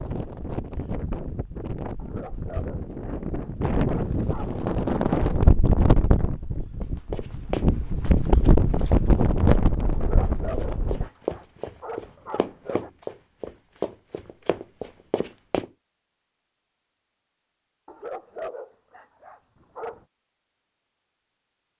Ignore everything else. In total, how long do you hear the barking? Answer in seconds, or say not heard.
8 s.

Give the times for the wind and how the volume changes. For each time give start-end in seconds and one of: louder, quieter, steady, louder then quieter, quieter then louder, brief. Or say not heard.
0.0-11.1 louder.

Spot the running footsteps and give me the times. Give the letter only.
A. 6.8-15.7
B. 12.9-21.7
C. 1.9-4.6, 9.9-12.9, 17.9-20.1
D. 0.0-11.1
A.